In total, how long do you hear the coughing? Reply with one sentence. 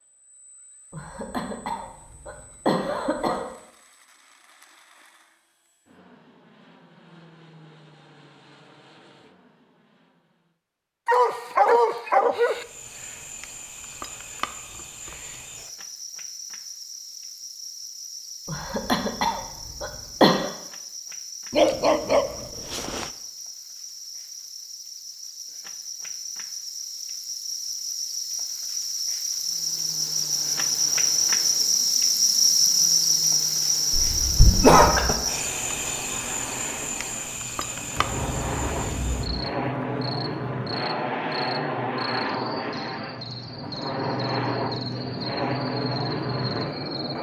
The coughing can be heard for 6 seconds in total.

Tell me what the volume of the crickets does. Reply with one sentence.
The loudness of the crickets goes up, then down.